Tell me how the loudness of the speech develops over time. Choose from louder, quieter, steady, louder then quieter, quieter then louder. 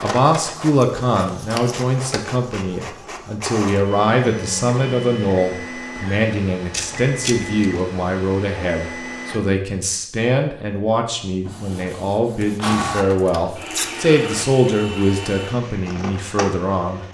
steady.